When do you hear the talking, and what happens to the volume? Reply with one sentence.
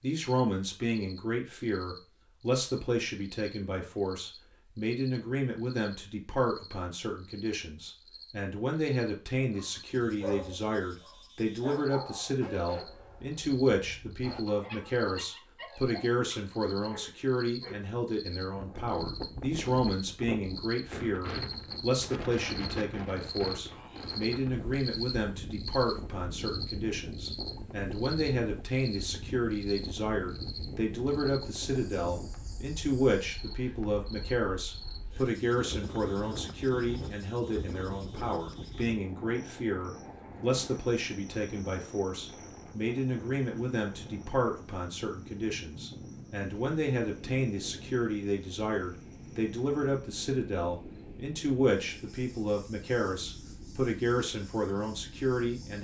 You can hear the talking from 0.0 to 55.7 s, at a steady volume.